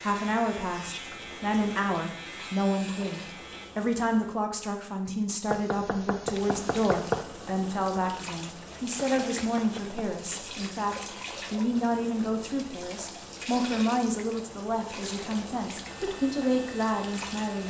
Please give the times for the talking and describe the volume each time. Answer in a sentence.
You can hear the talking from 0.0 to 17.6 s, at a steady volume.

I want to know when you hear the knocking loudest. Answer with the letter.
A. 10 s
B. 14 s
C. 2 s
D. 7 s
D.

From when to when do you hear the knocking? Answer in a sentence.
You can hear the knocking from 5.5 to 7.2 s and from 9.2 to 10.1 s.